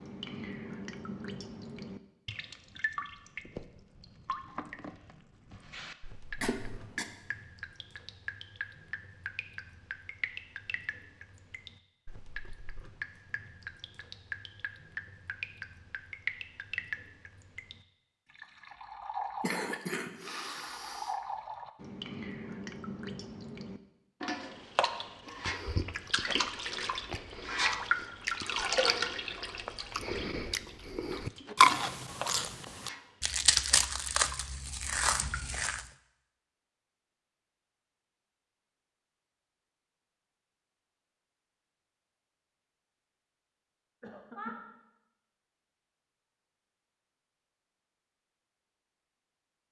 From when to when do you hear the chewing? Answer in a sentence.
The chewing can be heard from 25.2 to 35.9 s.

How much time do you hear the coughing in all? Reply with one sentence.
You can hear the coughing for 3 seconds altogether.